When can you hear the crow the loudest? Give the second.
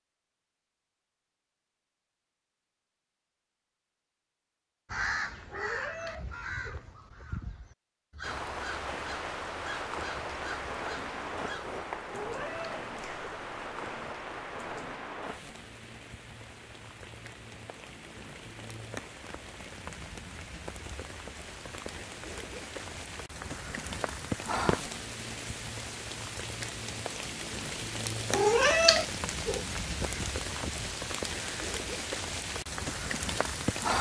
5 s.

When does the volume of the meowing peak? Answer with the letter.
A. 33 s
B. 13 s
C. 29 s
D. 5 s
C.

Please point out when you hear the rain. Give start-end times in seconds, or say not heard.
8.2-33.9.